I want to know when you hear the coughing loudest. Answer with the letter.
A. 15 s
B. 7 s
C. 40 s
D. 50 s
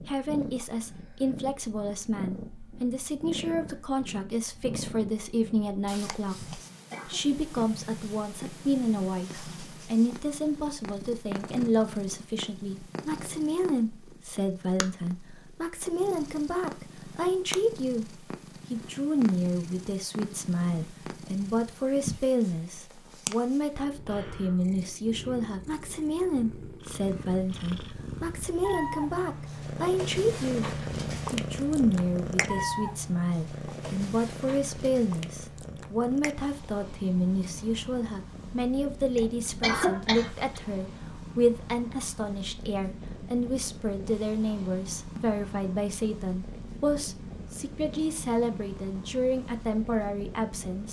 C.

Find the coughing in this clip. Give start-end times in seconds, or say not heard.
6.5-7.2, 39.1-40.6.